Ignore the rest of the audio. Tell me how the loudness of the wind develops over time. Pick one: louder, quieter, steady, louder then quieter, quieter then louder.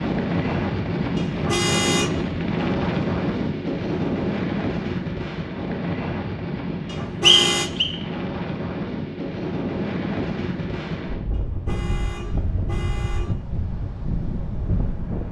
quieter.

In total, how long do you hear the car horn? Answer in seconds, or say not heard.
4 s.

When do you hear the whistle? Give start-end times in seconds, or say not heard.
7.2-7.9.